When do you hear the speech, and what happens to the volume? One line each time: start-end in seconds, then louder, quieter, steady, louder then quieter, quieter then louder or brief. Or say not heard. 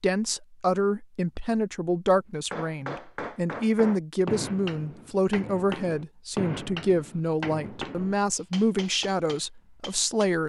0.0-10.4 steady.